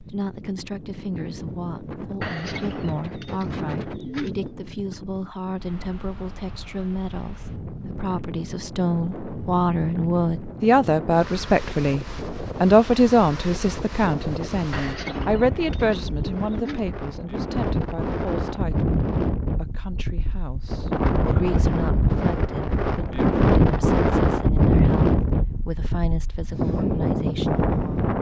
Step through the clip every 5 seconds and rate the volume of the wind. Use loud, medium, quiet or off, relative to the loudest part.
quiet, quiet, quiet, medium, loud, loud.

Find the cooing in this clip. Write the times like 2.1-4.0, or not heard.
2.2-4.5, 14.7-16.9.